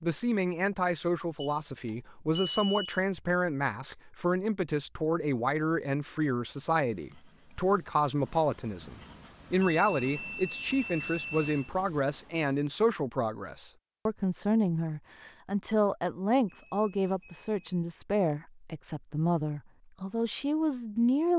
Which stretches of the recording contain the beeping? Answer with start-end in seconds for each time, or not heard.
1.4-3.0, 9.6-11.7, 16.4-17.8.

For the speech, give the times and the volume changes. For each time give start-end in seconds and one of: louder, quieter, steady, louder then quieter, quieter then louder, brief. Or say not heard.
0.0-21.3 steady.